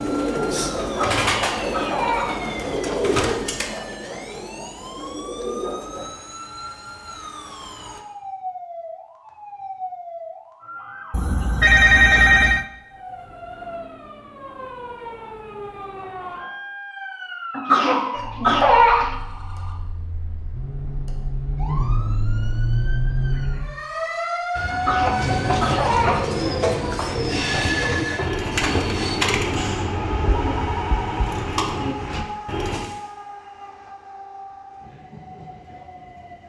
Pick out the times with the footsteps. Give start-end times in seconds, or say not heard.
not heard.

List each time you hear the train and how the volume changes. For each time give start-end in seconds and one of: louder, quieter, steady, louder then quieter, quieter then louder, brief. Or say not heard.
0.0-8.1 quieter
24.6-36.4 quieter.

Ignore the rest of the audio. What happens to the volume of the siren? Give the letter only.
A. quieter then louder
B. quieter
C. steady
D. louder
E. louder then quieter
D.